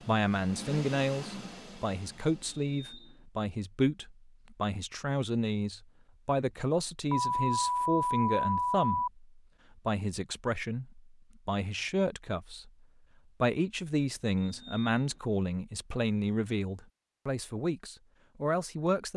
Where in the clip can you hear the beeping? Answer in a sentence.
You can hear the beeping from 2.6 to 3.2 s, from 7.1 to 9.1 s and from 14.3 to 15.2 s.